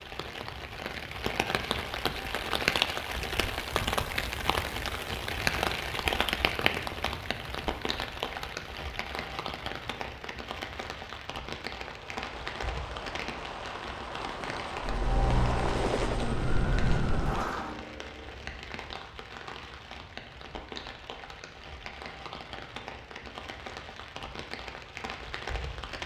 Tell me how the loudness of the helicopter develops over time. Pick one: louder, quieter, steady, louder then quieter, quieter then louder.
louder then quieter.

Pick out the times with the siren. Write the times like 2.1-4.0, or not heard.
14.8-17.7.